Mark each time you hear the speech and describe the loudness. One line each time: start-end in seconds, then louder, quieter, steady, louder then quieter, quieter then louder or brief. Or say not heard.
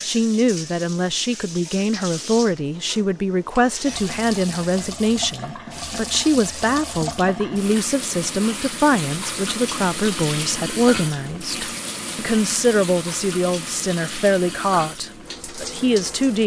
0.0-16.4 steady.